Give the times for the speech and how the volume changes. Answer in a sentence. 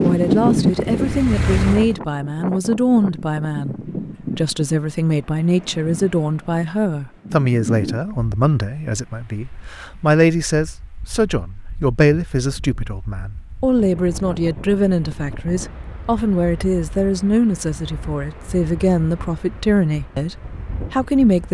The speech can be heard from 0.0 to 21.5 s, at a steady volume.